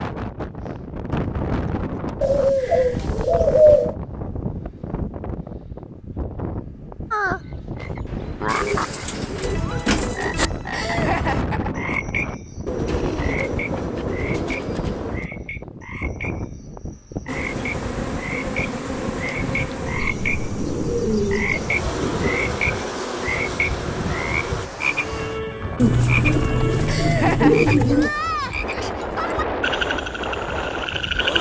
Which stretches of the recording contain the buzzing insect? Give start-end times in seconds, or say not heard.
17.2-24.7.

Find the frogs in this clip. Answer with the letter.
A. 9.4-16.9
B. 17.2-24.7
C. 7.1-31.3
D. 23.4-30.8
C.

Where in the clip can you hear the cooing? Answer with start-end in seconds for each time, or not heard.
2.2-4.0, 8.4-10.5, 12.7-15.3, 20.6-22.5, 25.8-28.1.